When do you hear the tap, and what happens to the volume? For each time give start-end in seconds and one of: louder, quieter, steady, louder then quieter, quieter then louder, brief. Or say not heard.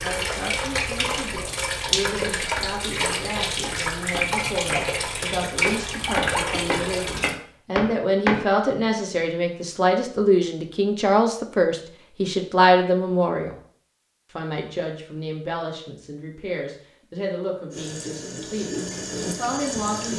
0.0-7.3 steady
17.7-20.1 brief.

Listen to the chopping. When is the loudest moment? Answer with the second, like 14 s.
8 s.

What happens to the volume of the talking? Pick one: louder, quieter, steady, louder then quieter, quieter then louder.
louder then quieter.